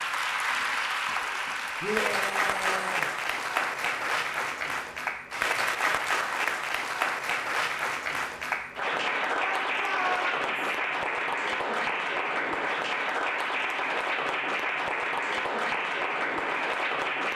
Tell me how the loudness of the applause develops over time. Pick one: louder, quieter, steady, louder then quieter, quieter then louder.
steady.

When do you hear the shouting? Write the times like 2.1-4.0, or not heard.
1.8-3.1, 9.3-10.6.